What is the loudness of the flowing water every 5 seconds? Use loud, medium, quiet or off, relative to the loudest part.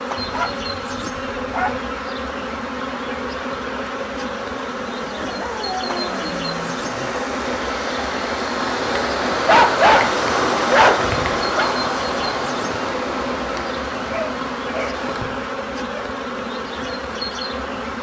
quiet, loud, loud, quiet.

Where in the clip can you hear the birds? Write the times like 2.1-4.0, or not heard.
not heard.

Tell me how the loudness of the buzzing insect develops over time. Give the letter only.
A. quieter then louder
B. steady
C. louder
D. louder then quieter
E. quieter
B.